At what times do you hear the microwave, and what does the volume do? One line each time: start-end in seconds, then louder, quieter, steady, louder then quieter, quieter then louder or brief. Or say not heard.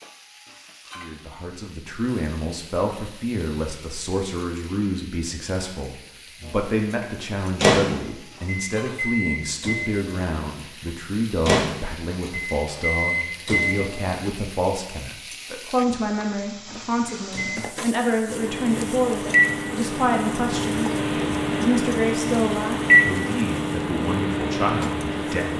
6.4-14.2 quieter then louder
17.3-25.5 louder then quieter.